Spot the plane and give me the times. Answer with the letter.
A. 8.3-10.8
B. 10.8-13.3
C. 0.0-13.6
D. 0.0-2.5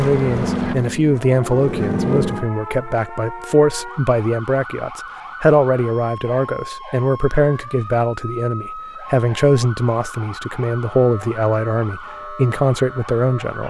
D.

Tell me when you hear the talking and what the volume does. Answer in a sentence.
The talking can be heard from 0.0 to 13.6 s, at a steady volume.